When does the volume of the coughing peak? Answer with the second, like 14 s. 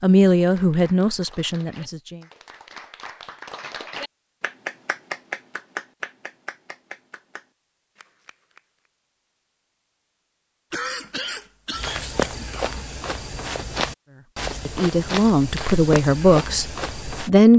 11 s.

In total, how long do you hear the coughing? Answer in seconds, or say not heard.
2 s.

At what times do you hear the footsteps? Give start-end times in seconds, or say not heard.
11.7-17.3.